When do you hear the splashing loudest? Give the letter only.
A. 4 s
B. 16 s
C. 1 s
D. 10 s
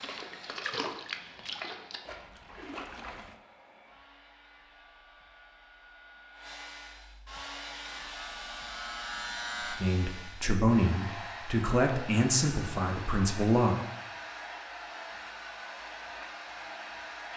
C.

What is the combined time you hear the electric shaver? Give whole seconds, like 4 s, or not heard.
2 s.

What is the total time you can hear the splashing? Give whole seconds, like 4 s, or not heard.
3 s.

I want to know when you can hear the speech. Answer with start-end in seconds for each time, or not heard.
9.7-13.8.